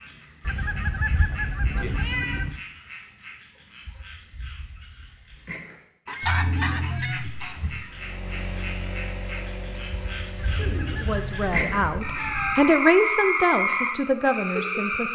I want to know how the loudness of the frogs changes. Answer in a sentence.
The volume of the frogs goes up.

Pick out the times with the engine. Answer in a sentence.
The engine can be heard from 7.8 to 12.2 s.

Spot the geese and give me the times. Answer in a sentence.
You can hear the geese from 0.5 to 2.6 s, from 6.0 to 7.8 s and from 10.6 to 12.7 s.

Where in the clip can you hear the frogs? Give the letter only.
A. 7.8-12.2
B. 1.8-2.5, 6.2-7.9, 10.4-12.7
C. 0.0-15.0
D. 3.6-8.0
C.